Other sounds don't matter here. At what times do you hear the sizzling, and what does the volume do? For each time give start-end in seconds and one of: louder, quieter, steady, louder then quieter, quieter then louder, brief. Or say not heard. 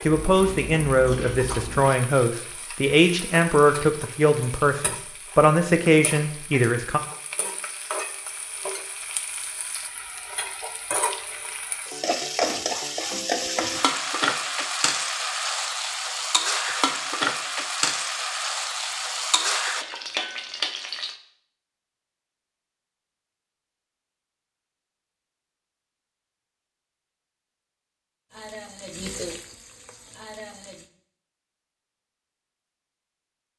0.0-21.1 louder
28.3-30.9 brief.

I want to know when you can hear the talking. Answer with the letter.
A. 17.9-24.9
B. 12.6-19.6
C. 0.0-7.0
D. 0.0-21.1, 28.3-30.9
C.